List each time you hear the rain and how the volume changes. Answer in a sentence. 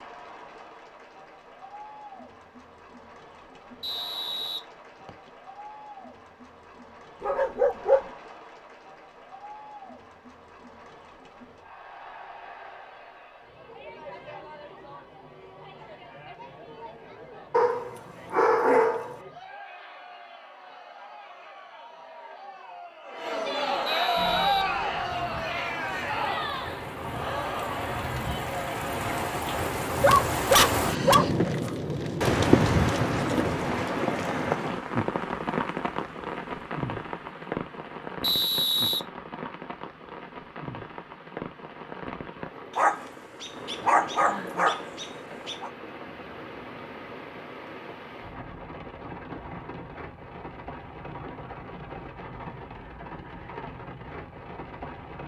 The rain can be heard from 24.1 to 55.2 s, getting louder then quieter.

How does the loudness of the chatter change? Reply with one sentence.
The volume of the chatter goes up.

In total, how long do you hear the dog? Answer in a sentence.
You can hear the dog for 7 seconds altogether.